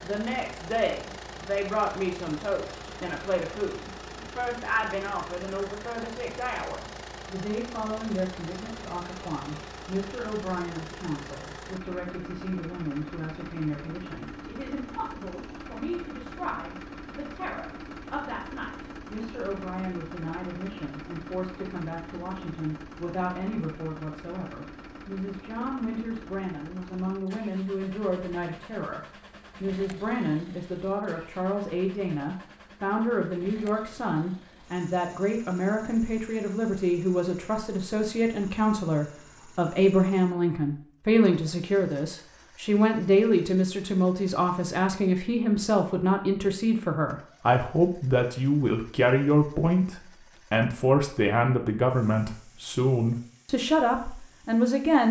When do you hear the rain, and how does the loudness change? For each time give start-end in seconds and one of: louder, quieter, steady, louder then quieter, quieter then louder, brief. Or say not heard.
not heard.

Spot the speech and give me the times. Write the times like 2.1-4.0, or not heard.
0.0-29.0, 29.6-55.0.